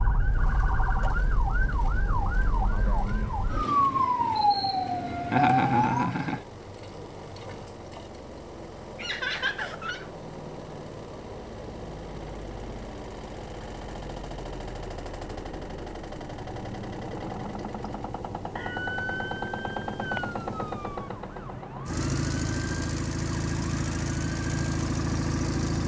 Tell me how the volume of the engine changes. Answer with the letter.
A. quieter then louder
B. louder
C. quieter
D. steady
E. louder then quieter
B.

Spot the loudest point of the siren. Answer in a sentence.
The volume of the siren peaks at 4 seconds.